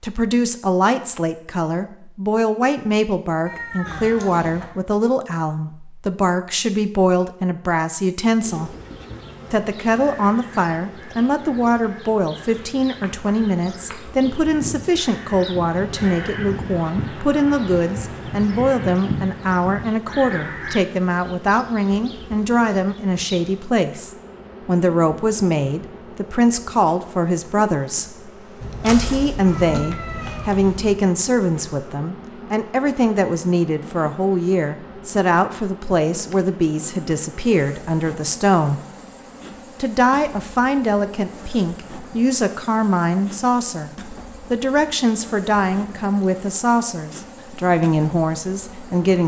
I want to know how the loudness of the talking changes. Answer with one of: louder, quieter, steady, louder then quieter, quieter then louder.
steady.